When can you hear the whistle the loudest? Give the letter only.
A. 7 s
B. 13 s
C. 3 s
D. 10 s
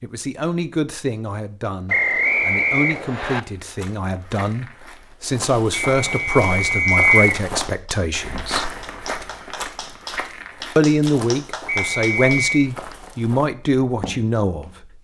A.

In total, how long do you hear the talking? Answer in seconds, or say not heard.
13 s.